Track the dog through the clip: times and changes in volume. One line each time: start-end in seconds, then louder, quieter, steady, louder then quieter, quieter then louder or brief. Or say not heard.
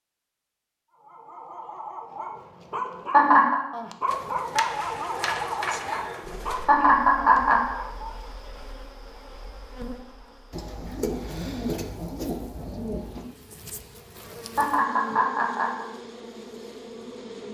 0.9-8.4 louder then quieter.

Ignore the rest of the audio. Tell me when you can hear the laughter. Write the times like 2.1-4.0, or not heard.
2.7-3.6, 6.7-7.8, 14.6-15.8.